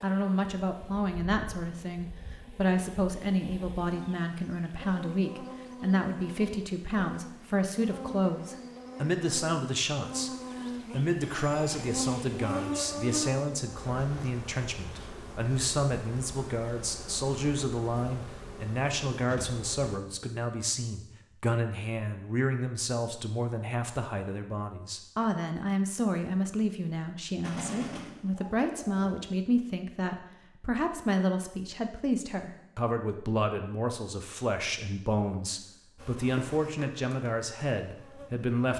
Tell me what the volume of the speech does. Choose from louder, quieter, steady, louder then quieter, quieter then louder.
steady.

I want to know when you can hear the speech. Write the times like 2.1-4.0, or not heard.
0.0-38.7.